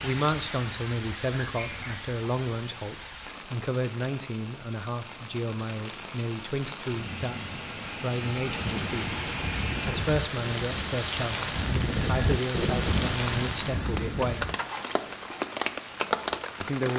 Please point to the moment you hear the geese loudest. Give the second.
12 s.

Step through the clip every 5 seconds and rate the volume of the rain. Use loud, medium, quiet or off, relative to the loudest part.
medium, medium, loud, loud.